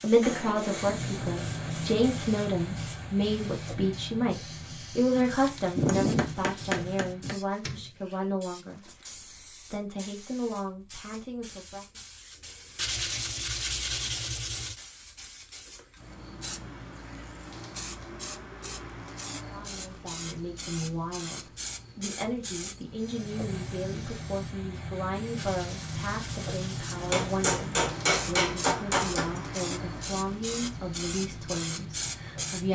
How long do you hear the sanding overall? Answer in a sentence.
The sanding can be heard for 6 seconds in total.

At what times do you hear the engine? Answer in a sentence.
The engine can be heard from 0.0 to 7.3 s and from 22.9 to 32.7 s.